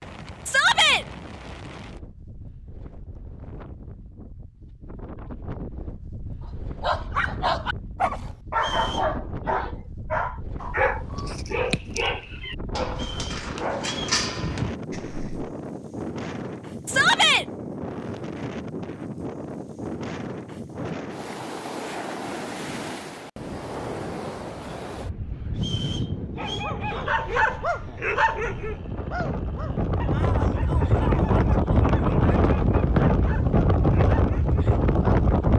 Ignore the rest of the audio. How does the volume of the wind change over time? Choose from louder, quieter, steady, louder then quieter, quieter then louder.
louder.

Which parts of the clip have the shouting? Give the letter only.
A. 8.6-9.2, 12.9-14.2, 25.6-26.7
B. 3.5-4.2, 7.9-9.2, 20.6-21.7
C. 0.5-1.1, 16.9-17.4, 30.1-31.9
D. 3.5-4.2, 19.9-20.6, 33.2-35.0
C.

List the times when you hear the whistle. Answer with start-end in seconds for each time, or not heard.
8.6-9.2, 12.9-14.2, 25.6-26.7.